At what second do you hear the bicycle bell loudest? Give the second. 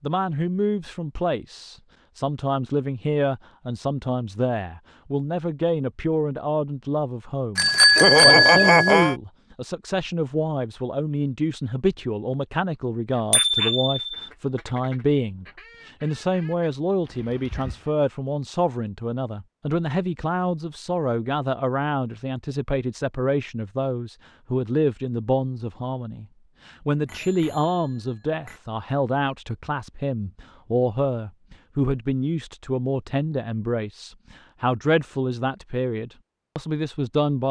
8 s.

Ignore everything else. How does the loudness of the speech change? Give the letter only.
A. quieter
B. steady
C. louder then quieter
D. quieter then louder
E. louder
B.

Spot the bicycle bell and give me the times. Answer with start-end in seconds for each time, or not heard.
7.5-9.2, 13.3-14.1, 27.1-28.6.